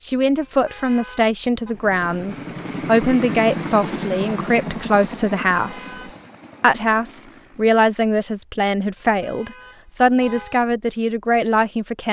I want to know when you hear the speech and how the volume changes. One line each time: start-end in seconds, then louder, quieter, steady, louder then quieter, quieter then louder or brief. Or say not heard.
0.0-12.0 steady.